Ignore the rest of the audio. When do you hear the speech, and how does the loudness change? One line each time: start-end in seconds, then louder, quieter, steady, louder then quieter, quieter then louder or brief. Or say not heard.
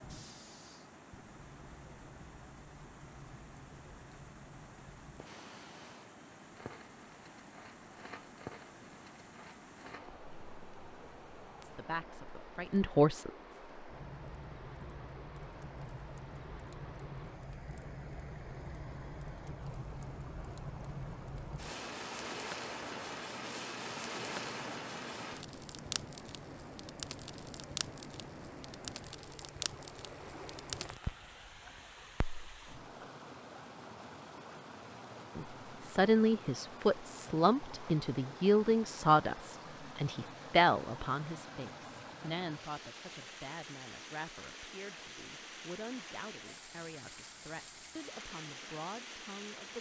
11.6-13.3 brief
35.4-49.7 quieter.